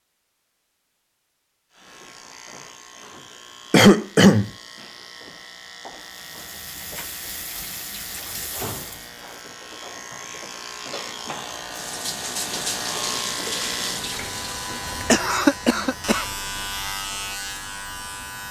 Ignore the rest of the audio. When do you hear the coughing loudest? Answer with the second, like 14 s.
4 s.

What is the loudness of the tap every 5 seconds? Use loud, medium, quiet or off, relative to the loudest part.
off, medium, loud, off.